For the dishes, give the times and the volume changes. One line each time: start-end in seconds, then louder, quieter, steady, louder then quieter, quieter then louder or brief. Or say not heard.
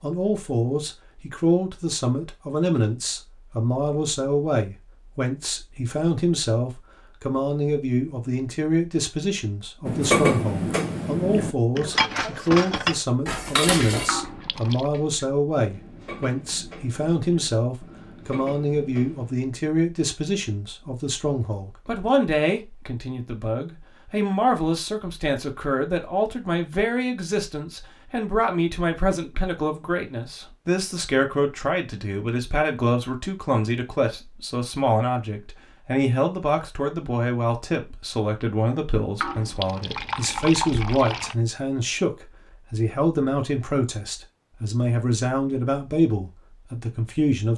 9.8-19.4 quieter.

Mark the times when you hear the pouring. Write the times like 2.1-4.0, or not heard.
14.1-14.9, 39.2-41.4.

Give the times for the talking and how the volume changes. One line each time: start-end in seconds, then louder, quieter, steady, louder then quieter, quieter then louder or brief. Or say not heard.
0.0-47.5 steady.